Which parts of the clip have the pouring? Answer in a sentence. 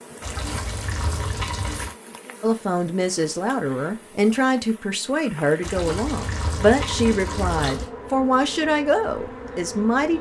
The pouring can be heard from 0.2 to 1.9 s and from 5.6 to 7.9 s.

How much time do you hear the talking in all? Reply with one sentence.
You can hear the talking for 8 seconds altogether.